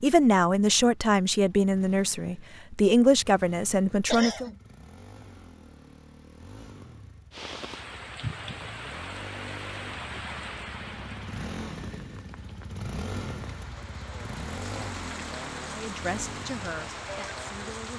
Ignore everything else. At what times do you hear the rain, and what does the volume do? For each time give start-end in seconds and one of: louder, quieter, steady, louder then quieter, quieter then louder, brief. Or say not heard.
7.3-17.9 quieter then louder.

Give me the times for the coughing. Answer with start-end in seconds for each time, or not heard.
4.1-4.6.